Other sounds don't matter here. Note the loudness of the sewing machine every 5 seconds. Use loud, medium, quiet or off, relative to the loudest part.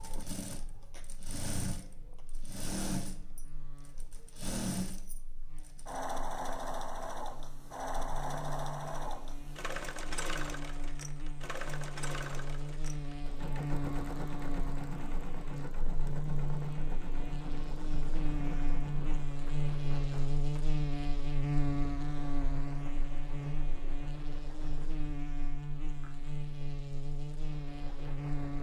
loud, loud, loud, medium, quiet, quiet.